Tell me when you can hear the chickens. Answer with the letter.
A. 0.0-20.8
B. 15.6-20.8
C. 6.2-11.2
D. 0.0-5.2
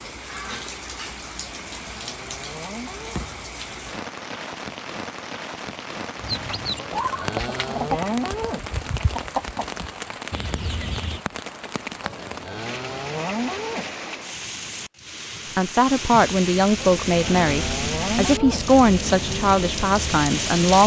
C.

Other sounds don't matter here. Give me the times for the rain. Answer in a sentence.
The rain can be heard from 0.0 to 20.8 s.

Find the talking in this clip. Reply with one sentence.
You can hear the talking from 15.6 to 20.8 s.